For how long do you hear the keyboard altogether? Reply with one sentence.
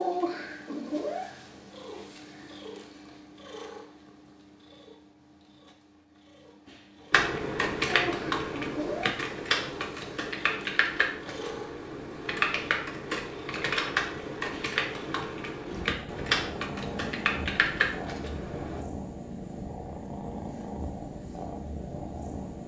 You can hear the keyboard for 12 seconds altogether.